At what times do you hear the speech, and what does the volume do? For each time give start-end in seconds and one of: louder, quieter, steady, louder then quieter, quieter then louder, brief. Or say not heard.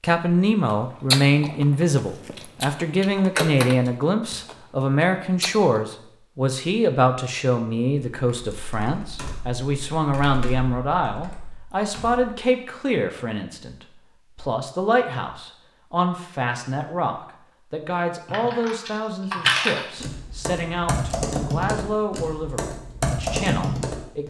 0.0-24.2 quieter.